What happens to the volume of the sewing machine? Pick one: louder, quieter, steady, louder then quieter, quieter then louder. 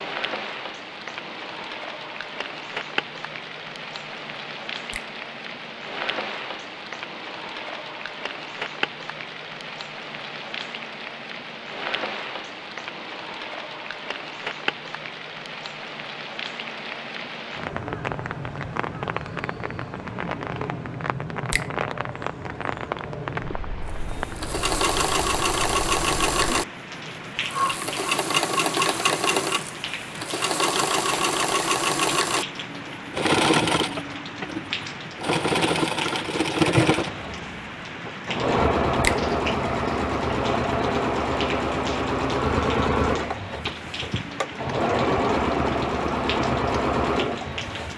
steady.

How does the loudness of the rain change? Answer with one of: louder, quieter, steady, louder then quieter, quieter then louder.
steady.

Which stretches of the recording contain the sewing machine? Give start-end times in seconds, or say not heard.
24.2-47.9.